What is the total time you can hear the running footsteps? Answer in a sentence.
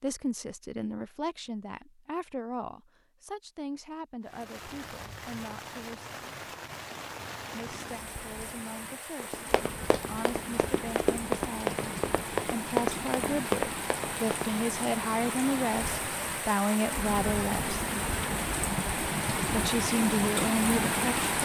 You can hear the running footsteps for 5 seconds altogether.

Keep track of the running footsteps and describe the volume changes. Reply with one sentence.
The loudness of the running footsteps goes up.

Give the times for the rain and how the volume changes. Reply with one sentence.
The rain can be heard from 4.2 to 21.4 s, getting louder.